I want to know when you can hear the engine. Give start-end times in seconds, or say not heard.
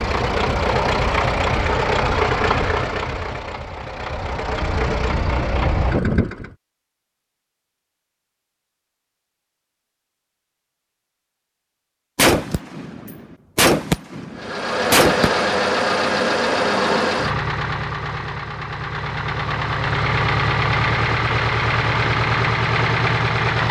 0.0-6.5, 14.3-23.6.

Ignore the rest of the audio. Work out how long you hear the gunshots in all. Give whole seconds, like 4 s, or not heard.
3 s.